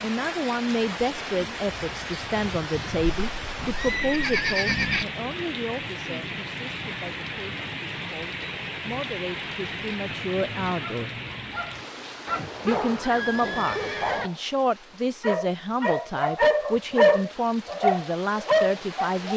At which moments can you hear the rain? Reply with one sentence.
You can hear the rain from 0.0 to 19.3 s.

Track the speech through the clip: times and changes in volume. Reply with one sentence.
You can hear the speech from 0.0 to 11.2 s, getting quieter then louder; and from 12.7 to 19.3 s, at a steady volume.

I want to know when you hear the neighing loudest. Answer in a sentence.
The volume of the neighing peaks at 5 seconds.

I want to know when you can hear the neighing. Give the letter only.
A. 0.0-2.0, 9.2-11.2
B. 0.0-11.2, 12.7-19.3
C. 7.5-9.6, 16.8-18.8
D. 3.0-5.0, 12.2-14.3
D.